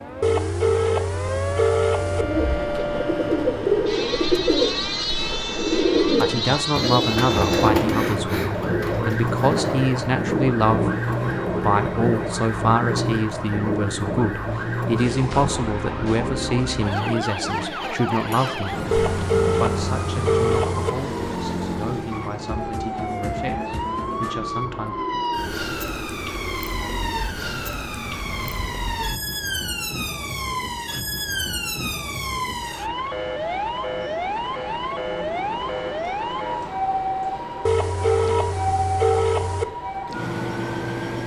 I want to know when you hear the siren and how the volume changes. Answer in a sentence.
The siren can be heard from 0.0 to 41.2 s, at a steady volume.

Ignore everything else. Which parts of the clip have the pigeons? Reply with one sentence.
You can hear the pigeons from 2.0 to 10.2 s.